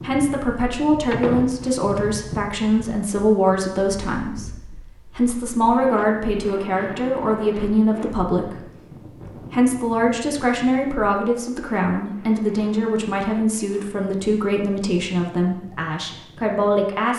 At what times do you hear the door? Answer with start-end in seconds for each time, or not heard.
1.1-1.8.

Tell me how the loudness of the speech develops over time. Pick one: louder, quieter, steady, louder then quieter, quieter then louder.
steady.